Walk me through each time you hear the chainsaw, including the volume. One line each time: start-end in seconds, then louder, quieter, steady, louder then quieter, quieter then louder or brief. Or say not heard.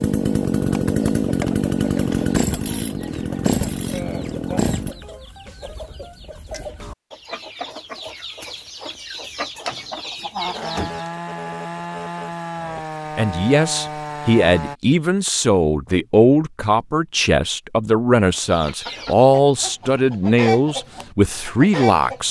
0.0-5.0 quieter
10.6-14.8 steady.